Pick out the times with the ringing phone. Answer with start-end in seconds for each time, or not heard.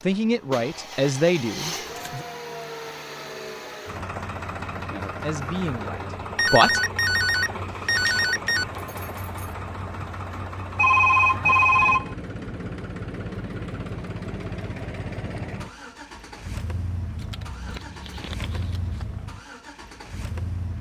6.3-8.7, 10.8-12.2.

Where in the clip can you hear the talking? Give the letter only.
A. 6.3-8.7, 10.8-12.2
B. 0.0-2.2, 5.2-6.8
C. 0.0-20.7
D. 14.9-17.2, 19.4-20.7
B.